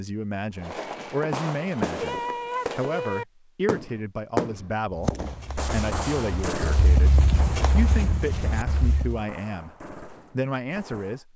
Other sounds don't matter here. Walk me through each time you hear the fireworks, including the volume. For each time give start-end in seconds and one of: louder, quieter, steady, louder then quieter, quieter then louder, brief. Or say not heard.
0.6-11.2 quieter.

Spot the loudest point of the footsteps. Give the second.
7 s.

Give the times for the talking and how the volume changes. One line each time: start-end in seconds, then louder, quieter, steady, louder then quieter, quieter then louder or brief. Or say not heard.
0.0-11.3 steady.